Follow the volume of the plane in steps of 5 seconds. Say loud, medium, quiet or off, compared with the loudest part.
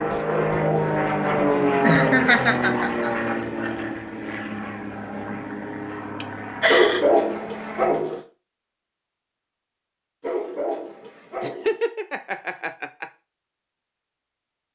loud, medium, off.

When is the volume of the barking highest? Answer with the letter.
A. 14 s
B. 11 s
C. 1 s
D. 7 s
D.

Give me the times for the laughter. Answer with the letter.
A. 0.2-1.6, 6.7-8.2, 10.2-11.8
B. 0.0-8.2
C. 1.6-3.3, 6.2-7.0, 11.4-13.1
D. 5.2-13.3
C.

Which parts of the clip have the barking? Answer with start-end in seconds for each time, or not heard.
0.2-1.6, 6.7-8.2, 10.2-11.8.